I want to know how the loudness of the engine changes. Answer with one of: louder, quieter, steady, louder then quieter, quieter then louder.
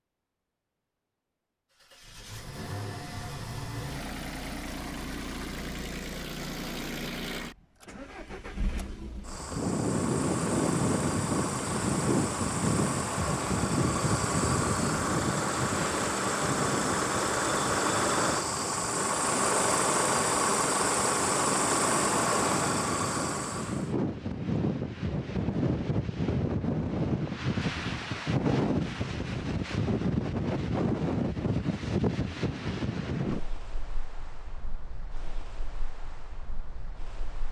louder.